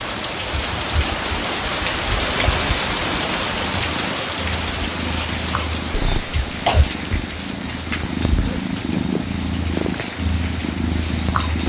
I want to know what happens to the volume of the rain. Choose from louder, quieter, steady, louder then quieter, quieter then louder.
quieter.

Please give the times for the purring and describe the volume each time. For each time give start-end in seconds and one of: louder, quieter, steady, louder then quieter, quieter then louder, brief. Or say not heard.
0.0-11.6 louder.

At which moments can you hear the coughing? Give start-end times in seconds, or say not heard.
5.9-6.9.